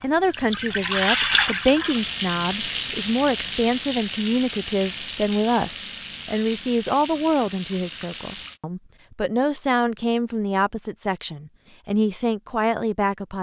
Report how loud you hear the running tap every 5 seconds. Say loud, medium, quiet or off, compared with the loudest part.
loud, medium, off.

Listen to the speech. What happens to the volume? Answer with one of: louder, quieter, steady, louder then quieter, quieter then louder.
steady.